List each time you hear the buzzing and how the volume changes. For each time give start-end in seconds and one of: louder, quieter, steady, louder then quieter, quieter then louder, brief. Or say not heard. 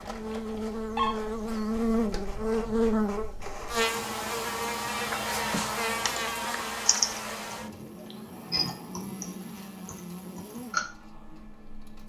0.0-12.0 quieter.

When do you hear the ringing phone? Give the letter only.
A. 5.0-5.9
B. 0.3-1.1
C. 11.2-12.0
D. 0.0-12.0
B.